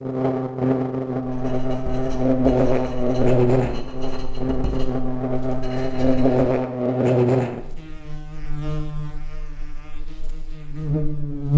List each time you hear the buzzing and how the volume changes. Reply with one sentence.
You can hear the buzzing from 0.0 to 11.5 s, getting quieter.